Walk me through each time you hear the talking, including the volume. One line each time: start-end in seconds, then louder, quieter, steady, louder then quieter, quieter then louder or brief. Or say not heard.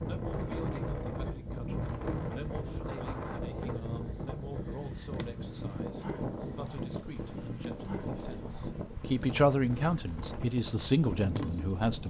0.1-12.0 louder.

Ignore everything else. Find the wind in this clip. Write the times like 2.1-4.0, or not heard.
0.0-12.0.